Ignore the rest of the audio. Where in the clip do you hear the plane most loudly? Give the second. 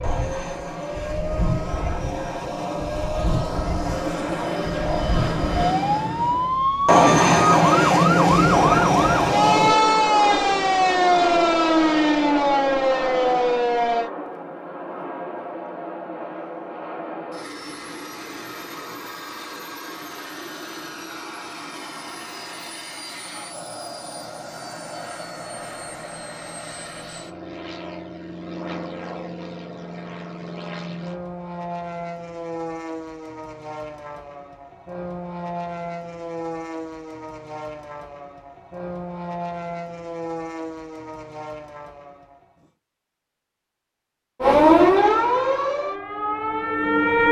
7 s.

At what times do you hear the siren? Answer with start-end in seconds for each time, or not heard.
0.0-14.1, 44.4-47.2.